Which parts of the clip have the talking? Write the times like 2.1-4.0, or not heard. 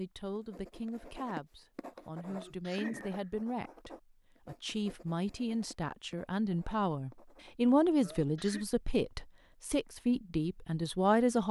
0.0-11.4.